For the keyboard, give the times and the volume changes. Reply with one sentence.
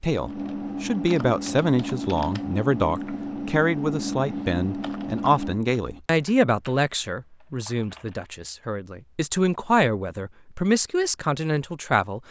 You can hear the keyboard from 0.1 to 8.3 s, getting quieter.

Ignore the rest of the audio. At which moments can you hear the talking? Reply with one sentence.
You can hear the talking from 0.0 to 12.2 s.